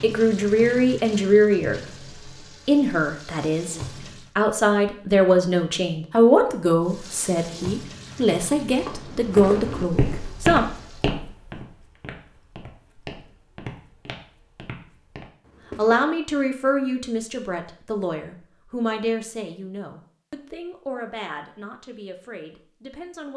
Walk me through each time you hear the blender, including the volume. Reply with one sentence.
The blender can't be heard in this clip.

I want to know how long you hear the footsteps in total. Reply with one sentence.
You can hear the footsteps for 7 seconds altogether.